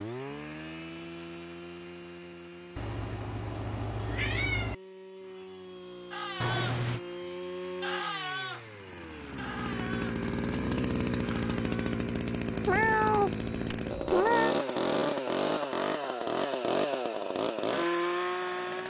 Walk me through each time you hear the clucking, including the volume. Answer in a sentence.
The clucking can't be heard in this clip.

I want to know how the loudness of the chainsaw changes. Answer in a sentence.
The volume of the chainsaw goes up.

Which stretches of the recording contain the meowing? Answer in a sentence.
You can hear the meowing from 2.8 to 4.8 s, from 6.4 to 7.0 s and from 12.7 to 14.6 s.